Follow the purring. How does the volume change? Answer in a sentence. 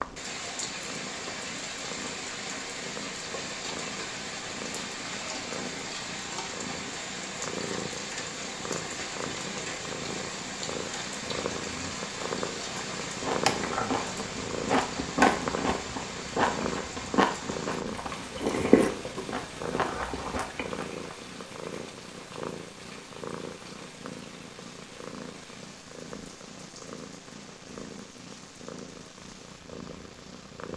The loudness of the purring goes up, then down.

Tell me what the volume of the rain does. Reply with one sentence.
The volume of the rain goes down.